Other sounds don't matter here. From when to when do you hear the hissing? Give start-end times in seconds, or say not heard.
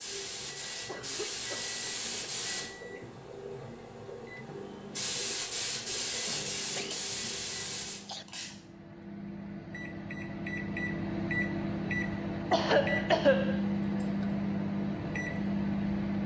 0.0-8.6.